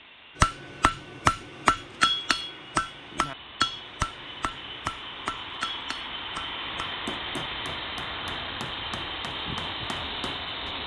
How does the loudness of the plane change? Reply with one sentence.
The loudness of the plane goes up.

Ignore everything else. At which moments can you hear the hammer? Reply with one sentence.
You can hear the hammer from 0.4 to 10.8 s.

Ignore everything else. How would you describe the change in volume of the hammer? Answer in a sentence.
The loudness of the hammer goes down.